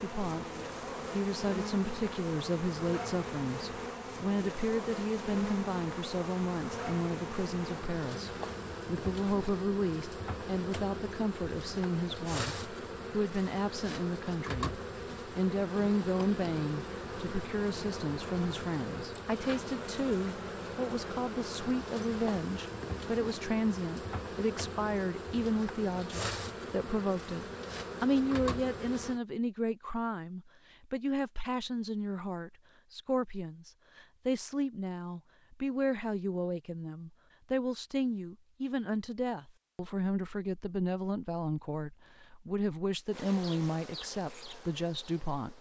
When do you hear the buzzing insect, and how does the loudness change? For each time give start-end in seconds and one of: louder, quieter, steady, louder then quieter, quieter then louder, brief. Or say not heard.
0.0-29.2 steady
43.1-45.5 brief.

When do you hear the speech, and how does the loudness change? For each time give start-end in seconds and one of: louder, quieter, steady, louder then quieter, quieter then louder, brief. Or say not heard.
0.0-0.5 brief
1.1-45.5 steady.